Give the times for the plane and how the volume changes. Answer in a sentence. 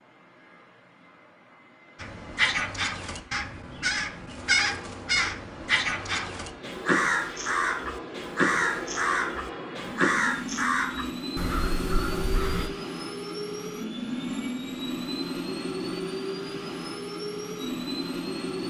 The plane can be heard from 0.0 to 18.6 s, getting louder.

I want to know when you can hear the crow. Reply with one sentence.
You can hear the crow from 2.0 to 12.7 s.